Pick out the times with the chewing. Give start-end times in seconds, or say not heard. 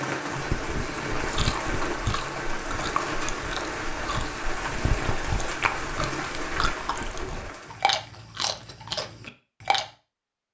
0.3-9.8.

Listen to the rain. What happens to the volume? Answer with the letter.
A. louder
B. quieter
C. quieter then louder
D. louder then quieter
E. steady
E.